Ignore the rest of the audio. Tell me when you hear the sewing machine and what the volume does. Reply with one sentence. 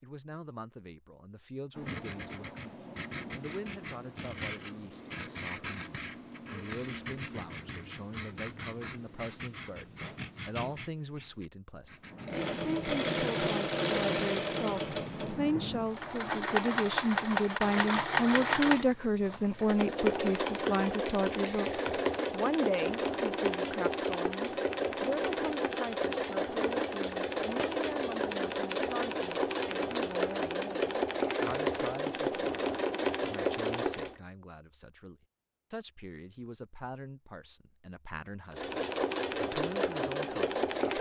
The sewing machine can be heard from 12.1 to 34.1 s, at a steady volume; and briefly from 38.5 to 40.9 s.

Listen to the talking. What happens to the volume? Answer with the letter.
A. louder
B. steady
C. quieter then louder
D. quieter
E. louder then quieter
E.